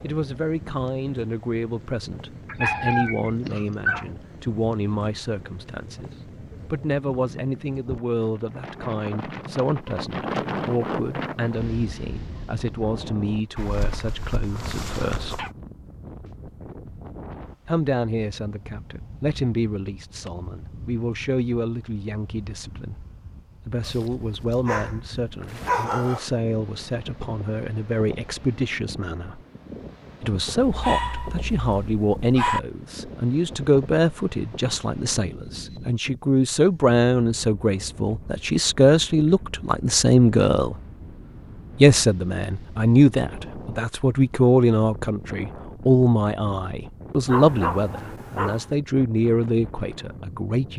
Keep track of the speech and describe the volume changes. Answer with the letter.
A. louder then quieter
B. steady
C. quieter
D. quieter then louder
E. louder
E.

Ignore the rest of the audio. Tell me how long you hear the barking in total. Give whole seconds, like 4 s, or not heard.
9 s.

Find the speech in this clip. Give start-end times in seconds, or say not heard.
0.0-15.4, 17.6-23.1, 23.6-29.4, 30.2-40.8, 41.8-50.7.